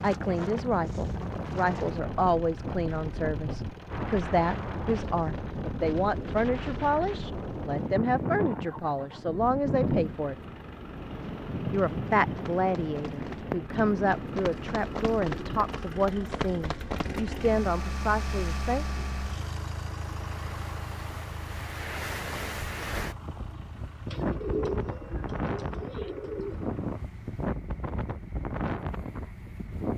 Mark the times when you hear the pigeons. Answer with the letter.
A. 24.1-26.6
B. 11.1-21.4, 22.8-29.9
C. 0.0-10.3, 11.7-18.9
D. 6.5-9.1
A.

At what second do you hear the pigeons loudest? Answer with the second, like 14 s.
25 s.